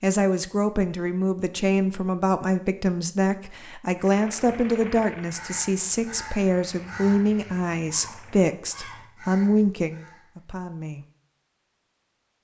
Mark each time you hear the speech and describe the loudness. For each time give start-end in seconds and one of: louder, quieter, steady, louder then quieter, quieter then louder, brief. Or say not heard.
0.0-11.1 steady.